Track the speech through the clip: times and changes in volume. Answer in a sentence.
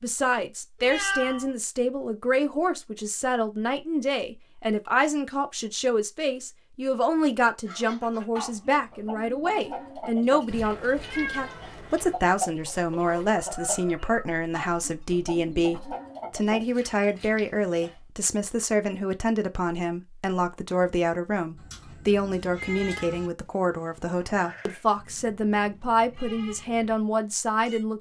You can hear the speech from 0.0 to 27.9 s, at a steady volume.